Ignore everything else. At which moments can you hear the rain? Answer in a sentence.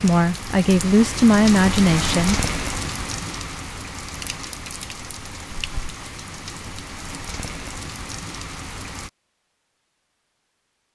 The rain can be heard from 0.0 to 9.1 s.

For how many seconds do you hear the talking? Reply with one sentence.
You can hear the talking for 2 seconds altogether.